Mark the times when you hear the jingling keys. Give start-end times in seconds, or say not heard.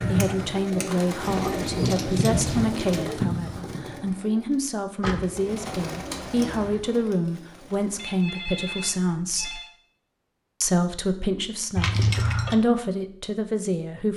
1.2-3.1, 5.0-6.8, 11.8-12.6.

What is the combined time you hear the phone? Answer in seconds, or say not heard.
2 s.